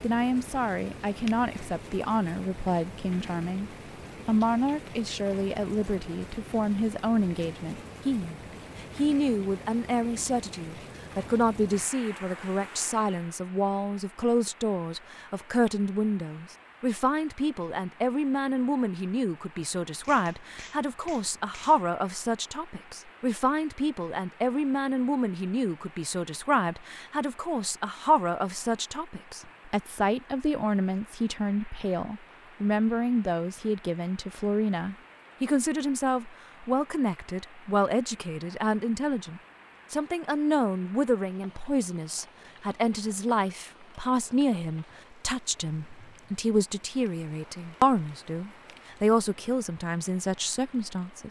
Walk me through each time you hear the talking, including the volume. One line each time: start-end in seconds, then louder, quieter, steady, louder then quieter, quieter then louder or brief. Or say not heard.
0.0-51.2 steady.